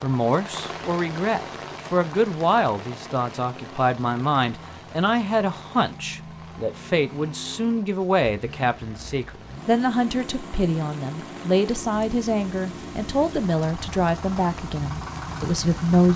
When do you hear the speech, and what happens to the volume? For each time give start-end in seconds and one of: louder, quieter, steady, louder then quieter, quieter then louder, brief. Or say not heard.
0.0-16.1 steady.